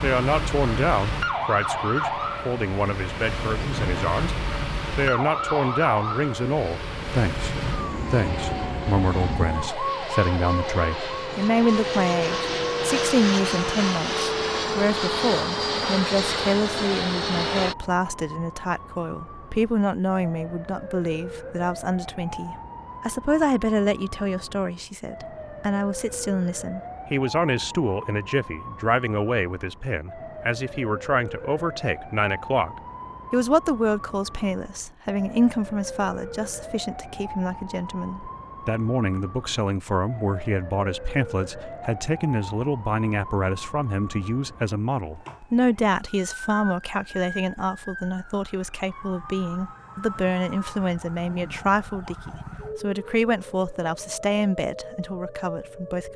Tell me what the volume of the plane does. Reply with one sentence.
The volume of the plane goes up.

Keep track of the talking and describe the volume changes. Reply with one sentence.
The volume of the talking stays about the same.